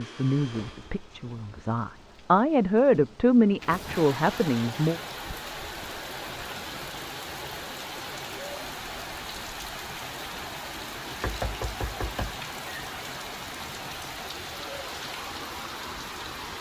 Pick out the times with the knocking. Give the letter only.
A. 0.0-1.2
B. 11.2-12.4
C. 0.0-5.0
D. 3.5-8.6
B.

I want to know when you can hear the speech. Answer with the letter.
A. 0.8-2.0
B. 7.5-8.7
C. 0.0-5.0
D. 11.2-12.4
C.